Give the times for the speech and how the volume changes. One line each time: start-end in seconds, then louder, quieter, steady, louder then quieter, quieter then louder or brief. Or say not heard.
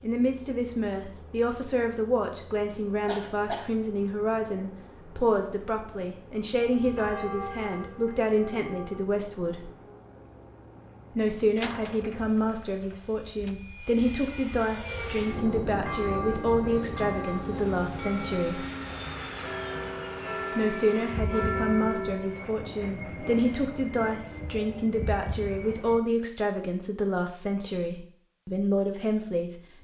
0.0-9.7 steady
11.2-18.6 steady
20.6-29.7 steady.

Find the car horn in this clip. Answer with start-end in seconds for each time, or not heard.
not heard.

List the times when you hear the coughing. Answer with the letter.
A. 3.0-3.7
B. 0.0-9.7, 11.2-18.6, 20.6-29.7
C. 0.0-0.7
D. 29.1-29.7
A.